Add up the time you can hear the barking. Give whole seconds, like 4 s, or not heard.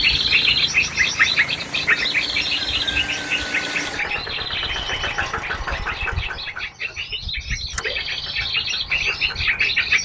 not heard.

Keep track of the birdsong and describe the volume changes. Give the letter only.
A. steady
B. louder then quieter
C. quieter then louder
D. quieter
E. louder
C.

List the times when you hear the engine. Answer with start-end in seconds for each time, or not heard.
0.0-10.0.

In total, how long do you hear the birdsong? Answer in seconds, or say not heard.
10 s.